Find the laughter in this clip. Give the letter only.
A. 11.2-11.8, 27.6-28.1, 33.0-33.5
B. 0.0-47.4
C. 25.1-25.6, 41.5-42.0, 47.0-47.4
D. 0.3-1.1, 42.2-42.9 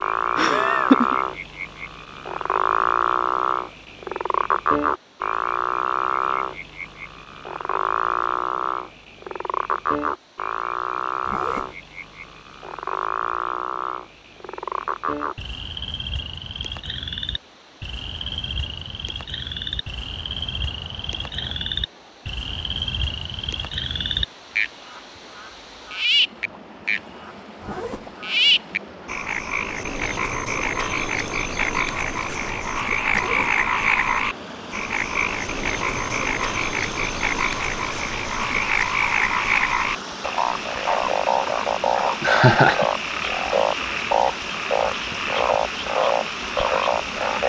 D.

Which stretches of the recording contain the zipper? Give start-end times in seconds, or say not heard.
11.2-11.8, 27.6-28.1, 33.0-33.5.